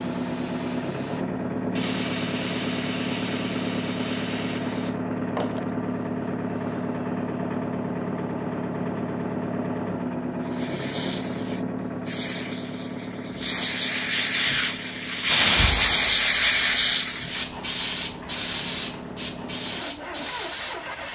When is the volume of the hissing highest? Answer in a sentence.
The volume of the hissing peaks at 16 seconds.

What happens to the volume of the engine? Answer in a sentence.
The volume of the engine goes down.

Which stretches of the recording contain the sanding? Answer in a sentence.
The sanding can't be heard in this clip.